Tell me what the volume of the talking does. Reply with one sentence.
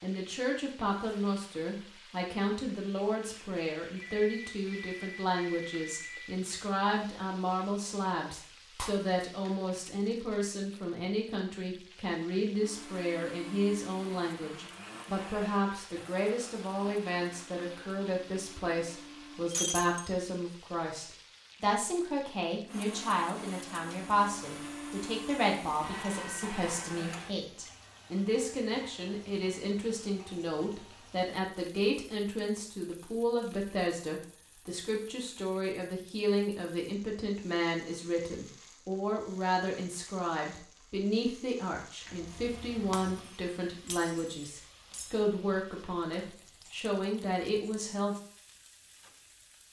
The volume of the talking stays about the same.